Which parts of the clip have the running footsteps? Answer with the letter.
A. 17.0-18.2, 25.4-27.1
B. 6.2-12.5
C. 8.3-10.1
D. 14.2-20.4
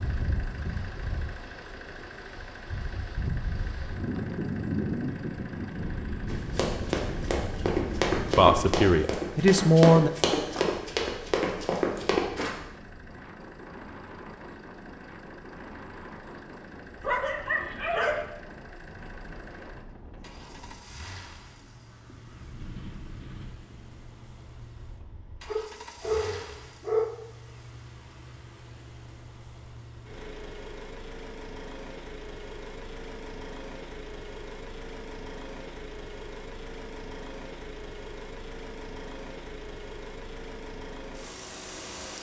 B.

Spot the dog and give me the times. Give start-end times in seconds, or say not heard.
17.0-18.2, 25.4-27.1.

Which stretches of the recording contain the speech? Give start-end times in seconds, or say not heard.
8.3-10.1.